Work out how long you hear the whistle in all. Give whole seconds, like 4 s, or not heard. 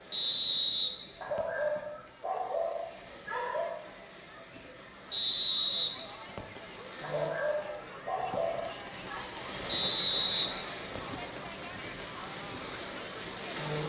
4 s.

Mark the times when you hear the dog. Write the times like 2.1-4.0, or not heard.
1.2-3.8, 7.0-9.2.